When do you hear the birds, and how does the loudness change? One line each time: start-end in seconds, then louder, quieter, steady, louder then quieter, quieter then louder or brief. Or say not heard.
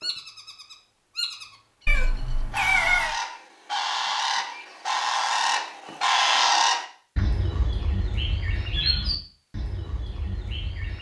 0.0-10.9 louder then quieter.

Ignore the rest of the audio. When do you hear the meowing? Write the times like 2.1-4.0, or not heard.
1.9-3.1.